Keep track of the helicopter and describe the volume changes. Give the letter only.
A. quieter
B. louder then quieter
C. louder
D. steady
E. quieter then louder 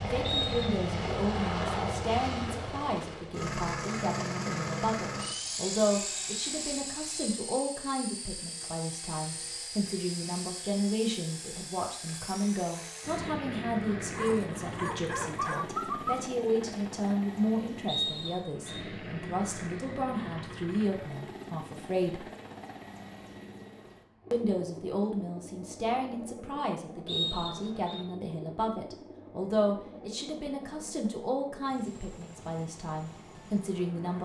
A.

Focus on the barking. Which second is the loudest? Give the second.
16 s.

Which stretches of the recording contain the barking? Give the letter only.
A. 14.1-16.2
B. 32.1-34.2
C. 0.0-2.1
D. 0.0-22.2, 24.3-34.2
A.